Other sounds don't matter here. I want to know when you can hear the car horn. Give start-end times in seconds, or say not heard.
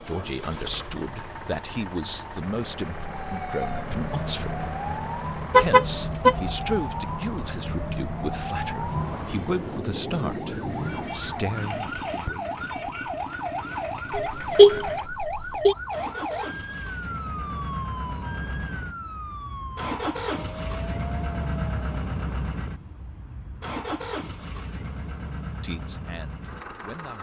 5.5-6.3, 14.1-15.8.